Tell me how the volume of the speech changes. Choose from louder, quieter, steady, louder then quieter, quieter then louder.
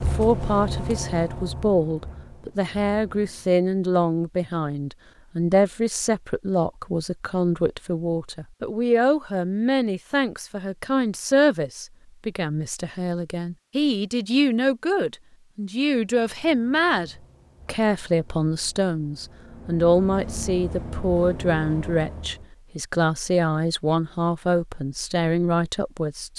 steady.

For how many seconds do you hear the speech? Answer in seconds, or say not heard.
26 s.